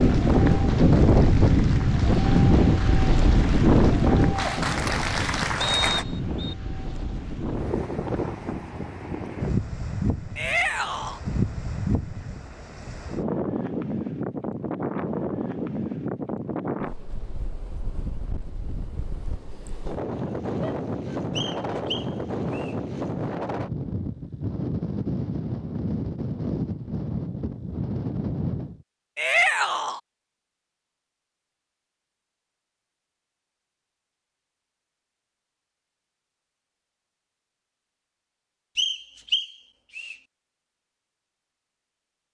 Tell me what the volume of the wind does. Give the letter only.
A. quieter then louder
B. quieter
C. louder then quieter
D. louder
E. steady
B.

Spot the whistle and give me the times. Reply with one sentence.
You can hear the whistle from 5.6 to 6.5 s, from 21.4 to 22.8 s and from 38.8 to 40.1 s.